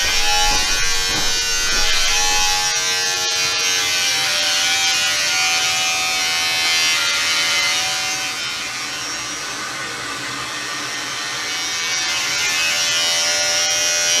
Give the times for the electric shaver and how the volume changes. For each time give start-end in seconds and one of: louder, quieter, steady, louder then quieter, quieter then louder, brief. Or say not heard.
0.0-14.1 quieter then louder.